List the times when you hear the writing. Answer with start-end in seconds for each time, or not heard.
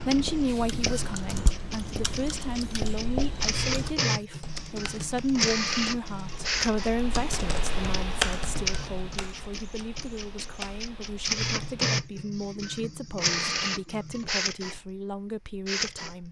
0.0-4.0.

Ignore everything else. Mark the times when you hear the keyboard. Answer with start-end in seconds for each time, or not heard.
0.5-11.9.